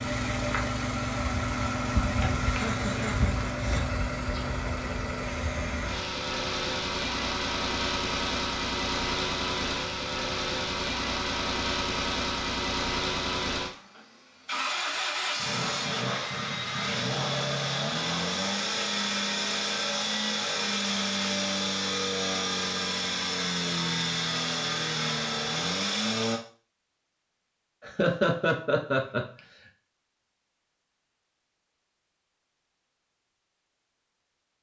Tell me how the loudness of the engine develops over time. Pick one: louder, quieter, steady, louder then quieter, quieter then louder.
steady.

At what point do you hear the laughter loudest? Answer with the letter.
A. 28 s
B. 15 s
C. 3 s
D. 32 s
A.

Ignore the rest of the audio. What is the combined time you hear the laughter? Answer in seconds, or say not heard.
3 s.